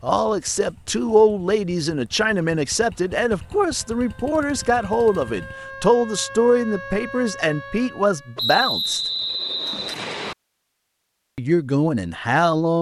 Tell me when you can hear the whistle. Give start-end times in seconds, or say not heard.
8.3-10.3.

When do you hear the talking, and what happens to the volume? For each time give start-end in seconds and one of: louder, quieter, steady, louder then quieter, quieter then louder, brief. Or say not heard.
0.0-9.0 steady
11.3-12.7 brief.